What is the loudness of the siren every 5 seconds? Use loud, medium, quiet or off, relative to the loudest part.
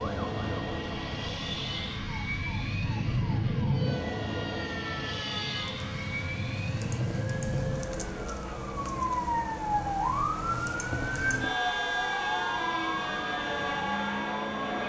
medium, loud, loud.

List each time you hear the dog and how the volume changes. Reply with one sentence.
The dog can't be heard in this clip.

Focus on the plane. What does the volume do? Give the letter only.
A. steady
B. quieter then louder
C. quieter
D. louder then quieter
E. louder
B.